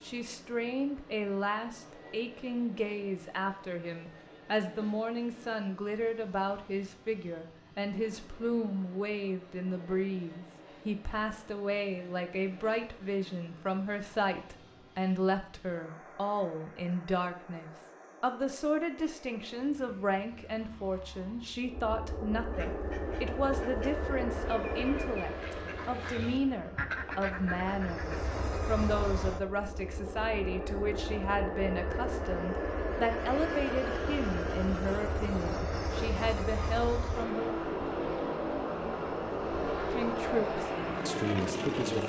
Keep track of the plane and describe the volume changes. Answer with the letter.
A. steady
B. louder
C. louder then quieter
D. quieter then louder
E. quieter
B.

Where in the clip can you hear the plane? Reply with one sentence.
The plane can be heard from 0.0 to 42.0 s.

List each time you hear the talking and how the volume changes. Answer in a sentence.
The talking can be heard from 0.0 to 37.6 s, at a steady volume; and briefly from 39.8 to 42.0 s.